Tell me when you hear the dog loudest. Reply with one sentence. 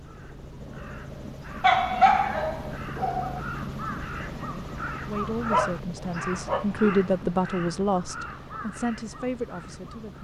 The volume of the dog peaks at 2 seconds.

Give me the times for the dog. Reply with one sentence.
The dog can be heard from 1.6 to 3.4 s and from 5.5 to 6.8 s.